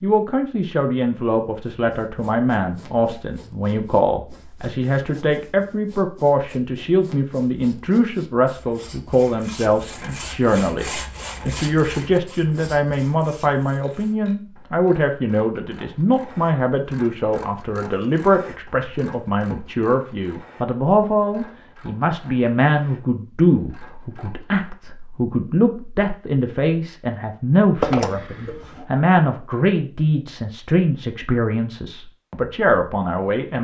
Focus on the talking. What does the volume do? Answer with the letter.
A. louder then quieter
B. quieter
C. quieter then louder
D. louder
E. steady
E.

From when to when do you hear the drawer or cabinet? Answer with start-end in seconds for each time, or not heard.
27.8-28.9.